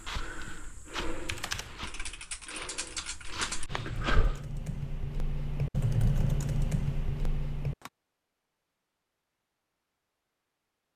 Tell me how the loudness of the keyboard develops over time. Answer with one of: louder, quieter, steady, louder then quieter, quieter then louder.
louder.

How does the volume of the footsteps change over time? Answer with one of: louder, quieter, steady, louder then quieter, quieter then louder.
quieter then louder.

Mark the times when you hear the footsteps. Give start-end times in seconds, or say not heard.
0.0-4.4.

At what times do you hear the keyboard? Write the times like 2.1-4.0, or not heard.
1.1-7.9.